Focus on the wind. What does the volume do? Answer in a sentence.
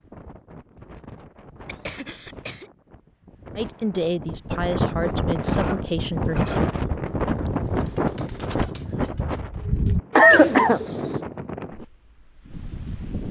The volume of the wind goes up, then down.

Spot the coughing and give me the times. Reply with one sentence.
You can hear the coughing from 1.6 to 2.7 s, from 5.5 to 6.7 s and from 10.2 to 10.8 s.